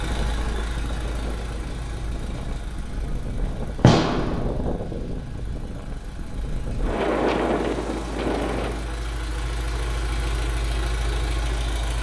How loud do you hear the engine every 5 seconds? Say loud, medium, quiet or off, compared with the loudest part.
medium, medium, loud.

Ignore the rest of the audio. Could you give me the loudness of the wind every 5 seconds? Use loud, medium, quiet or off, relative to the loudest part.
medium, loud, off.